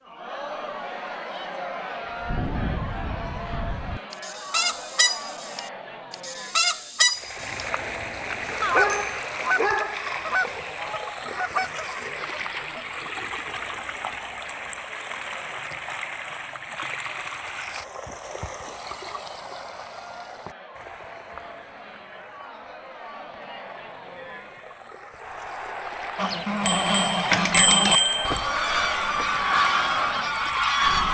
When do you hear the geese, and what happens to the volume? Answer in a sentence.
The geese can be heard from 2.0 to 13.1 s, getting louder then quieter; and from 26.1 to 31.0 s, at a steady volume.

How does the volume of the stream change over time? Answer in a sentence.
The volume of the stream goes down, then up.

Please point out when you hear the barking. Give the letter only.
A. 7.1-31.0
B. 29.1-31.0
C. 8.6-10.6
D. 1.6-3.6
C.